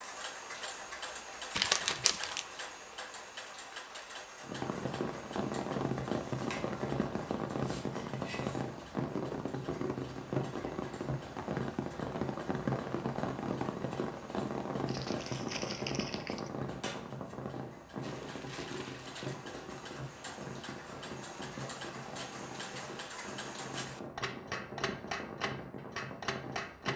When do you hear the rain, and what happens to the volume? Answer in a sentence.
You can hear the rain from 4.4 to 26.9 s, getting quieter.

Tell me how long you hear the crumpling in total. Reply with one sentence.
You can hear the crumpling for 4 seconds altogether.